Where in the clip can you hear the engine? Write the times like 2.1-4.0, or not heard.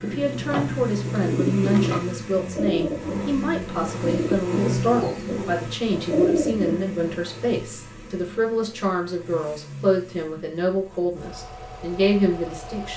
0.0-12.9.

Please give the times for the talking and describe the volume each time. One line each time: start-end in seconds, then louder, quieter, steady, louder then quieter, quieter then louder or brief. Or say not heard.
0.0-12.9 steady.